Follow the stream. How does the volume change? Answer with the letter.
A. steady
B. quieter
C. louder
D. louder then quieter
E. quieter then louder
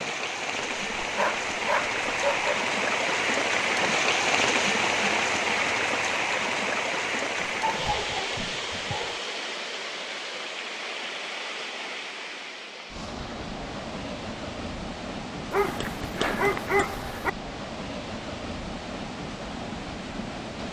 B.